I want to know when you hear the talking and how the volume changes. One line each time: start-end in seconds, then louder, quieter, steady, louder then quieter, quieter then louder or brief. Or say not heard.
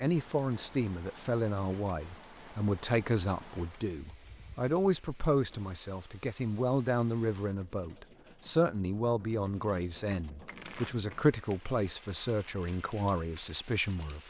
0.0-14.2 steady.